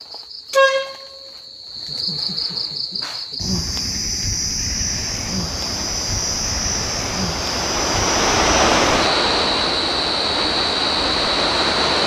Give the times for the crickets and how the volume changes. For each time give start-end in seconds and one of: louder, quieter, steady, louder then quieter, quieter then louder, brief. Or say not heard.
0.0-12.0 steady.